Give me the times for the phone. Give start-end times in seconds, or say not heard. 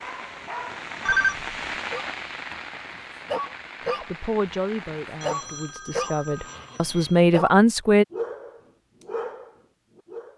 1.1-1.6, 5.2-7.2.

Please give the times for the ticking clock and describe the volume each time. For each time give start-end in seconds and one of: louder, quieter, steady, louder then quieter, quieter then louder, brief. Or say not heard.
not heard.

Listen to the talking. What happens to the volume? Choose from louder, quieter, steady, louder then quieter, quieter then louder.
quieter then louder.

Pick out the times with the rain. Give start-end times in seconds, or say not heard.
0.0-5.5.